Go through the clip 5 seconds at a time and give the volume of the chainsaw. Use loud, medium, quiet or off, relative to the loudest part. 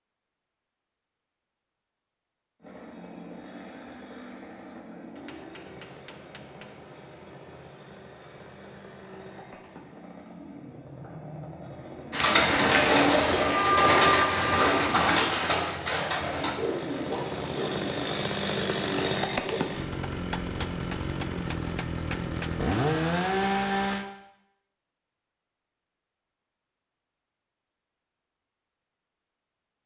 quiet, quiet, quiet, loud, loud, off.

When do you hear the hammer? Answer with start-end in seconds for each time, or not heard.
5.2-6.8, 20.1-22.6.